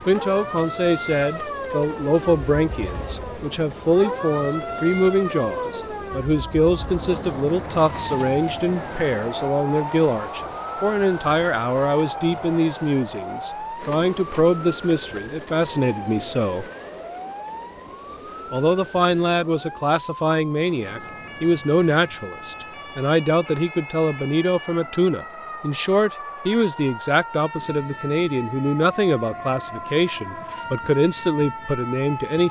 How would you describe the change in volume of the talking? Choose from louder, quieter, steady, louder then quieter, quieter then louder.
steady.